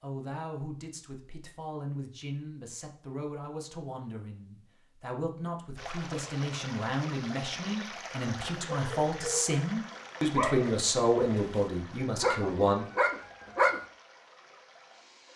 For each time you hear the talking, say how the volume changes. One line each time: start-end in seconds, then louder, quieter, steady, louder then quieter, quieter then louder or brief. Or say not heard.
0.0-12.8 louder.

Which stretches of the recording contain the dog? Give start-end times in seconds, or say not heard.
8.7-13.8.